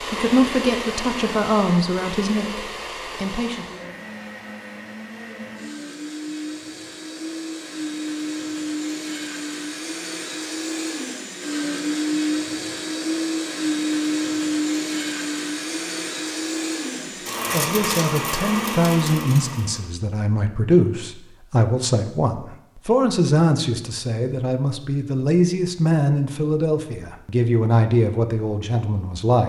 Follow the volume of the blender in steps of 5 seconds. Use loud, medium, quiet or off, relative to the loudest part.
medium, medium, loud, loud, off, off.